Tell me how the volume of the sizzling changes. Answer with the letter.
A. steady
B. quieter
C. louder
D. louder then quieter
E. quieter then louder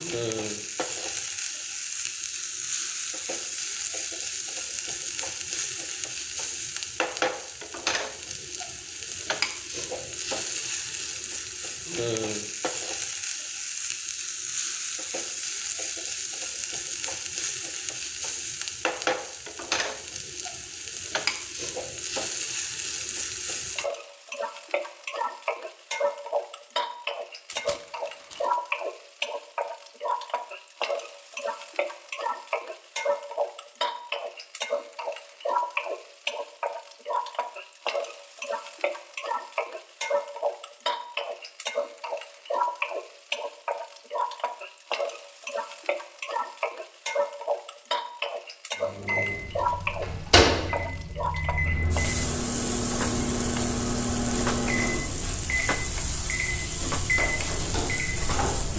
A.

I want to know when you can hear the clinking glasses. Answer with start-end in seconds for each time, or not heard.
not heard.